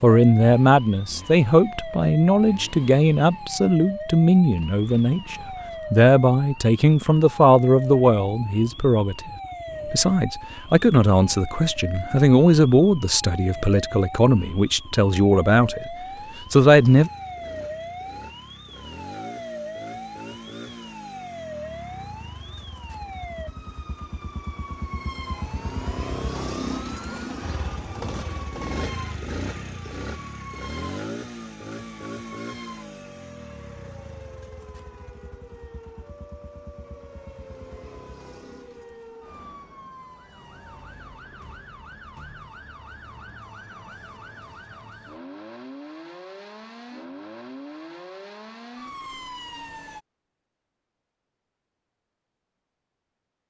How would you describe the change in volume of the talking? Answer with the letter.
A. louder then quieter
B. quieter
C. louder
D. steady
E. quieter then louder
D.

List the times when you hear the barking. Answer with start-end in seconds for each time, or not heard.
not heard.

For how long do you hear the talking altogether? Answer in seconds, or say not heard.
17 s.